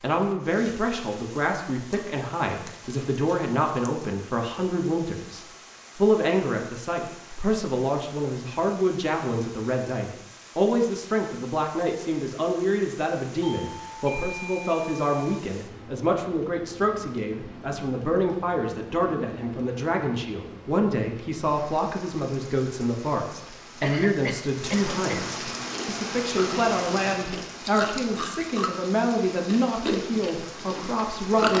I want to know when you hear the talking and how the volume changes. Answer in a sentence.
The talking can be heard from 0.0 to 31.5 s, at a steady volume.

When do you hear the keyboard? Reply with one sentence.
The keyboard can't be heard in this clip.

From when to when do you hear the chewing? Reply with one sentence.
You can hear the chewing from 25.7 to 31.5 s.